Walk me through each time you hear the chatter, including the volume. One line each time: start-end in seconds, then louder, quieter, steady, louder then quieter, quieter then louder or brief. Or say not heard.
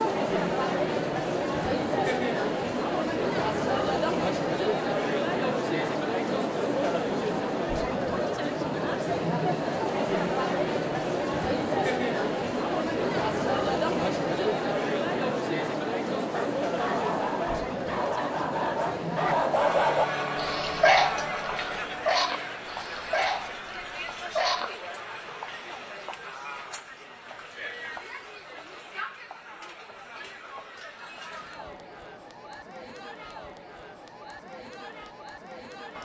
0.0-36.0 quieter.